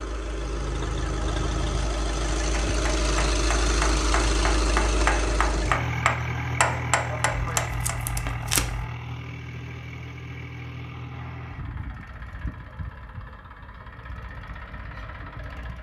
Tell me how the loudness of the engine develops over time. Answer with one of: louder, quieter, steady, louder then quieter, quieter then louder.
quieter.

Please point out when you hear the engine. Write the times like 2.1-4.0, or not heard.
0.0-15.7.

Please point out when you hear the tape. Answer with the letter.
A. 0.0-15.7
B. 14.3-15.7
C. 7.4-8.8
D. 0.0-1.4
C.